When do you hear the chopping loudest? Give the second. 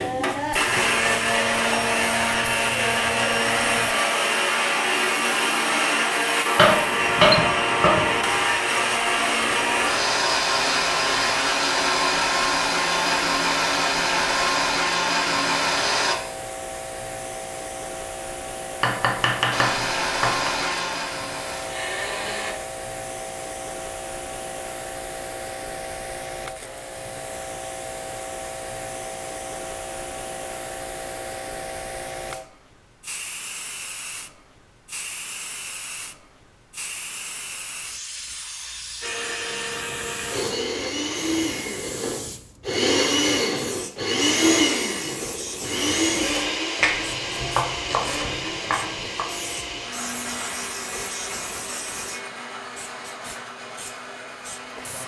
7 s.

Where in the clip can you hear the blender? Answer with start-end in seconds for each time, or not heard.
0.0-16.1, 19.5-22.6, 39.0-55.0.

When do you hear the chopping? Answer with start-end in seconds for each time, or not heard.
6.5-8.4, 18.8-20.5, 46.8-49.2.